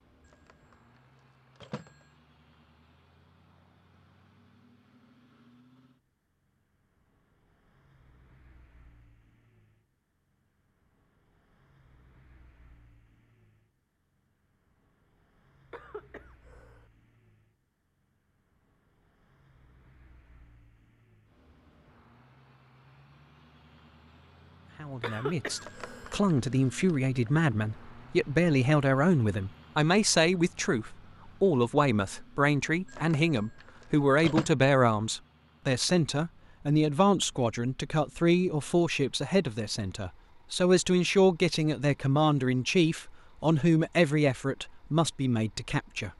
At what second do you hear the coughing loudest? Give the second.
25 s.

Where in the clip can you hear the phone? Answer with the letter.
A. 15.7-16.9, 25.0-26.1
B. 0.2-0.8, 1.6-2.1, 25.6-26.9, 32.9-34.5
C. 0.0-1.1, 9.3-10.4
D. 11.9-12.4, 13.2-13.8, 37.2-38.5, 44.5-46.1
B.